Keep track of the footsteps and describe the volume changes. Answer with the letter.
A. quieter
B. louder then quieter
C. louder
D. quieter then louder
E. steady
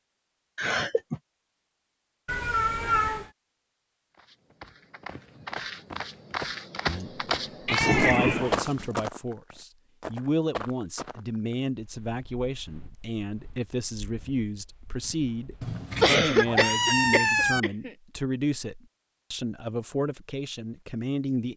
B.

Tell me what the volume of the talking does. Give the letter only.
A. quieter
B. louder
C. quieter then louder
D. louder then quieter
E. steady
E.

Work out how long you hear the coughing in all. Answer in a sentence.
The coughing can be heard for 3 seconds in total.